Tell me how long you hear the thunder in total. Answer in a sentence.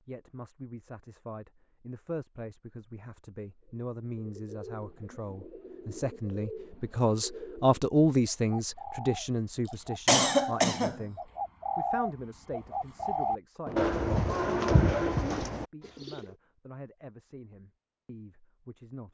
You can hear the thunder for 2 seconds altogether.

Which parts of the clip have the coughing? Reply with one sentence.
You can hear the coughing from 9.7 to 11.0 s.